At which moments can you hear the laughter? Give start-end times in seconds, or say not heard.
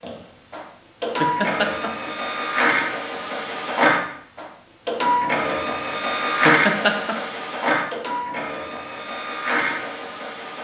1.2-2.1, 6.5-7.2.